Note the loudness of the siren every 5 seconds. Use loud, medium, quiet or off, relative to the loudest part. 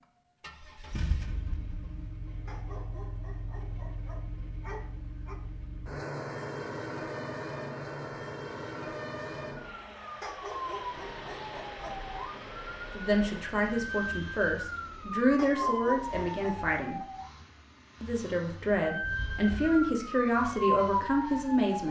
off, quiet, medium, loud, loud.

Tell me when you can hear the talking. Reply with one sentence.
The talking can be heard from 12.9 to 17.0 s and from 18.0 to 21.8 s.